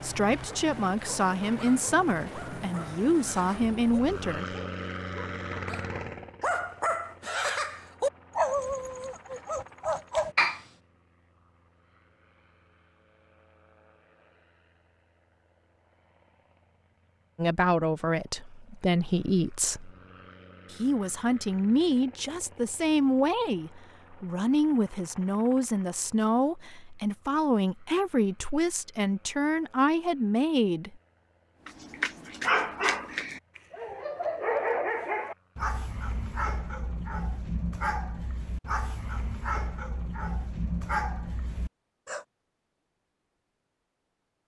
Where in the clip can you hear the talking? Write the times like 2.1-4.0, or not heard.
0.0-4.5, 17.4-19.9, 20.7-30.9.